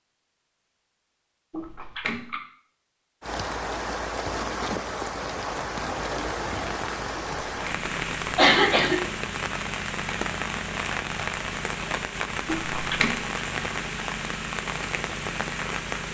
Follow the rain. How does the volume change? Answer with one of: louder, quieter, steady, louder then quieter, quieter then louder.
steady.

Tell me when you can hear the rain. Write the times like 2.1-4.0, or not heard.
3.2-16.0.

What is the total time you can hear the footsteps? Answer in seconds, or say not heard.
not heard.